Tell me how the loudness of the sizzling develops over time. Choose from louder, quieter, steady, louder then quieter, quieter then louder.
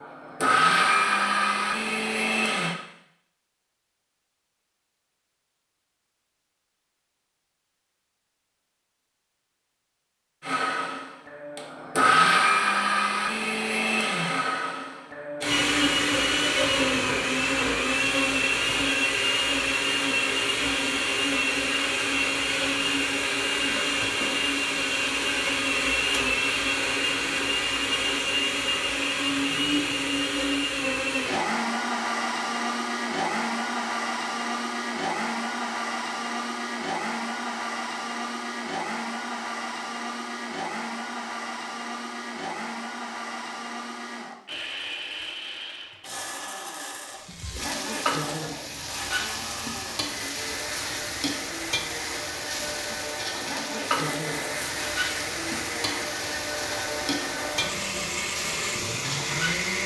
steady.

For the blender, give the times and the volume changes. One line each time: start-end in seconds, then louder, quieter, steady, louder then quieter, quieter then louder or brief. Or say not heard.
0.0-2.8 brief
10.4-59.8 quieter.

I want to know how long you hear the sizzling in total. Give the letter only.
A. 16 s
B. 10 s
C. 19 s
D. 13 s
D.